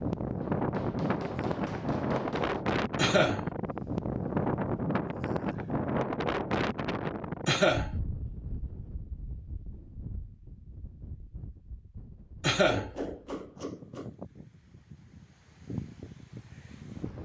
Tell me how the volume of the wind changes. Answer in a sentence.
The volume of the wind goes down, then up.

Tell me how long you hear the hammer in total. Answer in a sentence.
You can hear the hammer for 4 seconds altogether.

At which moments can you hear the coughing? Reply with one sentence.
The coughing can be heard from 3.0 to 3.5 s, from 7.5 to 7.9 s and from 12.4 to 12.9 s.